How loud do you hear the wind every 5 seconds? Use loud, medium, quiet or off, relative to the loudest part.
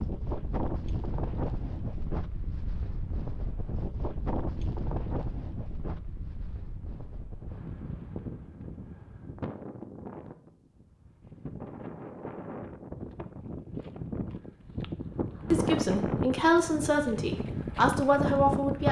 medium, medium, medium, loud.